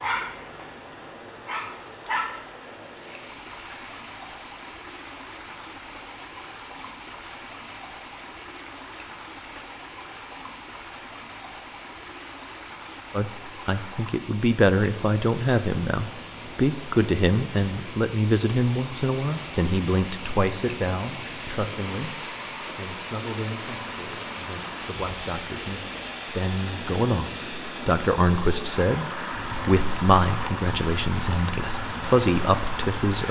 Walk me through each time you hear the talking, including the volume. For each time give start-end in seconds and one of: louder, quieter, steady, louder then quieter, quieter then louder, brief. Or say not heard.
13.1-33.2 quieter then louder.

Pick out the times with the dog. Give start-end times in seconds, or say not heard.
0.0-2.5.